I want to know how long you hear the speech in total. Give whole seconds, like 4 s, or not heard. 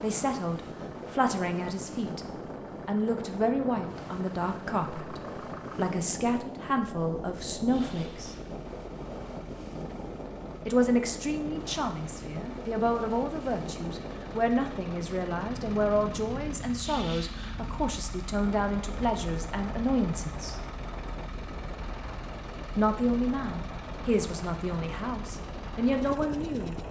22 s.